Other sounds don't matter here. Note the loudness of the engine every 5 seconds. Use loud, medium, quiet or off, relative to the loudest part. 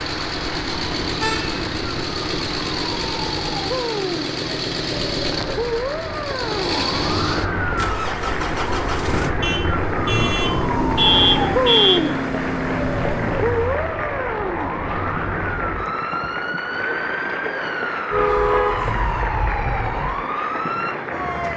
loud, loud, loud, off, off.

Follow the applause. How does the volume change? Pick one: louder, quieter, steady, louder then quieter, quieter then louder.
louder.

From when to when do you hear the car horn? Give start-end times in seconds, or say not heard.
1.2-1.6, 9.4-12.0, 18.1-20.1.